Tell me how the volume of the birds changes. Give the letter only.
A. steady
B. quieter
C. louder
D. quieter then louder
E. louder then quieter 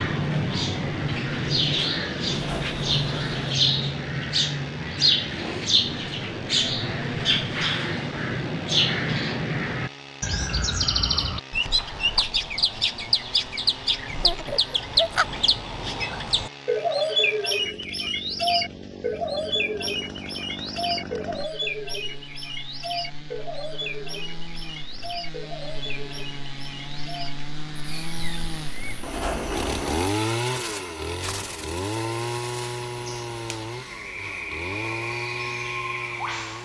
B.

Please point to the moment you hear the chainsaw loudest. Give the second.
30 s.